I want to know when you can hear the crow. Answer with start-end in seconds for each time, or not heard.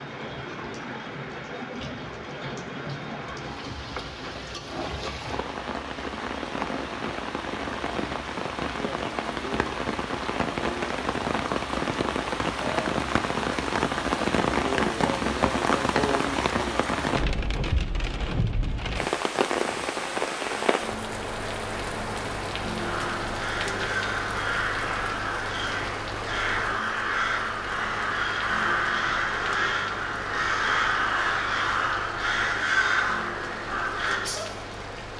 22.8-34.5.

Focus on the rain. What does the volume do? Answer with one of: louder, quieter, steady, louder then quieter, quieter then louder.
louder then quieter.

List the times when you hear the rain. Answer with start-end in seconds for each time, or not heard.
0.0-35.1.